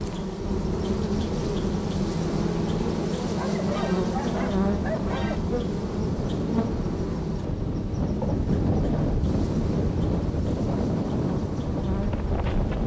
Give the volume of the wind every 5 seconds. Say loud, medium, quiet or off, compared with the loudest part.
medium, loud, loud.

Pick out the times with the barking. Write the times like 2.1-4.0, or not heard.
3.4-5.4.